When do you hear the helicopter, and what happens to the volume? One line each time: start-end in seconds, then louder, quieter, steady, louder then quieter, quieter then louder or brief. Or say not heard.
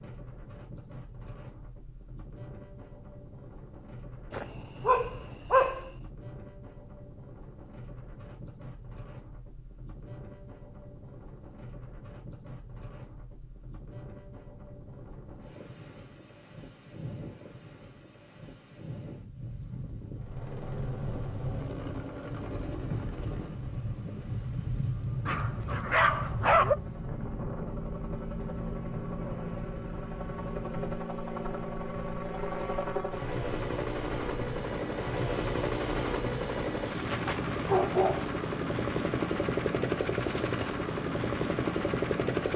20.1-42.5 louder.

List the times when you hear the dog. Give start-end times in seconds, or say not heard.
4.3-5.9, 25.2-26.8, 37.0-38.2.